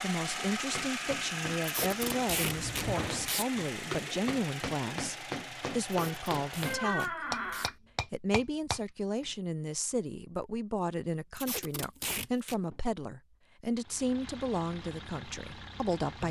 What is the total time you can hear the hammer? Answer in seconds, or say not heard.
9 s.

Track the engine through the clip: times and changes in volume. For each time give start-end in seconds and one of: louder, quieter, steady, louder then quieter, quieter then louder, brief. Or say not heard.
0.0-7.0 quieter
13.8-16.2 brief.